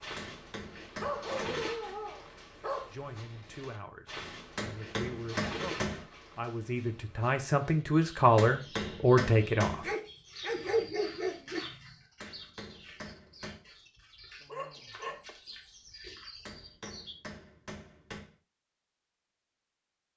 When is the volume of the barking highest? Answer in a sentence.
The loudest moment of the barking is at 11 seconds.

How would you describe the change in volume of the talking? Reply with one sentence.
The volume of the talking goes up.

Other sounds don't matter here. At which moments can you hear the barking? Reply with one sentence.
You can hear the barking from 1.0 to 3.0 s, from 9.8 to 11.6 s and from 13.9 to 15.3 s.